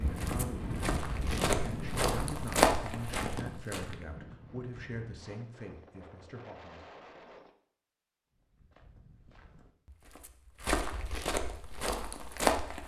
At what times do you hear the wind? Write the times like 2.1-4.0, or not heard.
0.0-7.5.